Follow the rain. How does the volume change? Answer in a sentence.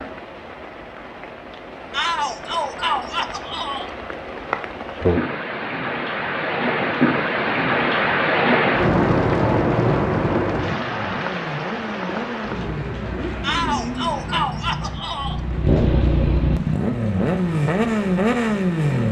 The volume of the rain goes up, then down.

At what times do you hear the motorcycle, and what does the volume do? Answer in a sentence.
You can hear the motorcycle from 10.6 to 19.0 s, getting louder.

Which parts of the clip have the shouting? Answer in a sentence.
The shouting can be heard from 1.9 to 3.9 s and from 13.4 to 15.4 s.